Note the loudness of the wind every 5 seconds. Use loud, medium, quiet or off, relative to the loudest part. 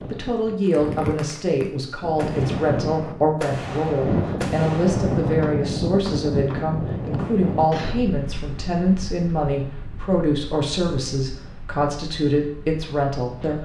loud, loud, quiet.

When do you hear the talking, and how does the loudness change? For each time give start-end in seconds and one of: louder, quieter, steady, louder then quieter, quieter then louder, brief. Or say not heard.
0.1-13.6 steady.